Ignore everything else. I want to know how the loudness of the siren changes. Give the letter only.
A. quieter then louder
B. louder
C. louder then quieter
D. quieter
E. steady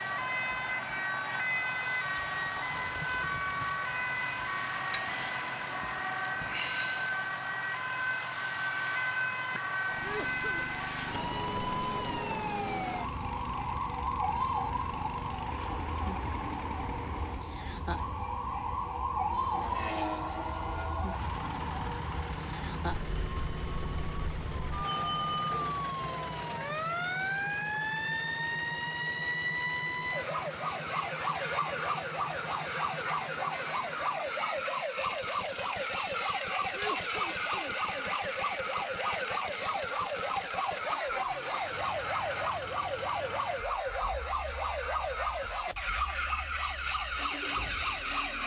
E.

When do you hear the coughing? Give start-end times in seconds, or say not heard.
10.0-10.7, 36.7-38.1.